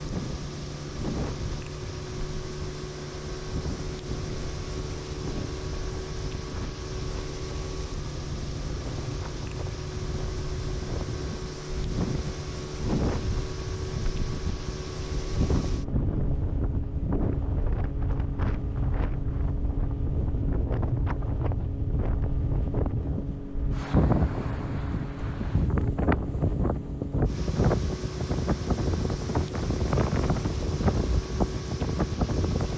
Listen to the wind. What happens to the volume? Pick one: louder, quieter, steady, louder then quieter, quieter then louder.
louder.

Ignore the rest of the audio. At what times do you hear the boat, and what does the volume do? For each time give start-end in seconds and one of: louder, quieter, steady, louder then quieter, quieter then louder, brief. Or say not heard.
0.0-32.7 steady.